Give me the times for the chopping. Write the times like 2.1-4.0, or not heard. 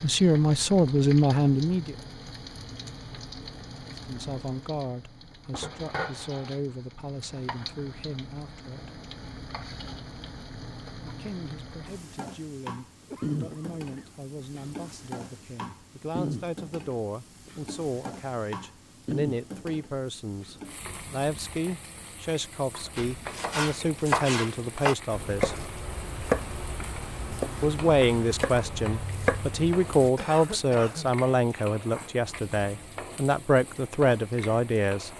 22.9-30.1.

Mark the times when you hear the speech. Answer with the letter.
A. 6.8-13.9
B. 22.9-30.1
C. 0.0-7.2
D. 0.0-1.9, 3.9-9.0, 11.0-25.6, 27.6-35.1
D.